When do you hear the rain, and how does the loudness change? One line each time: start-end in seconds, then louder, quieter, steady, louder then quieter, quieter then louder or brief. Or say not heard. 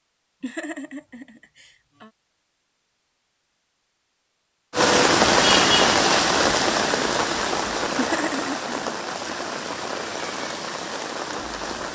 4.7-11.9 quieter.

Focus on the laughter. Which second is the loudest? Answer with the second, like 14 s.
8 s.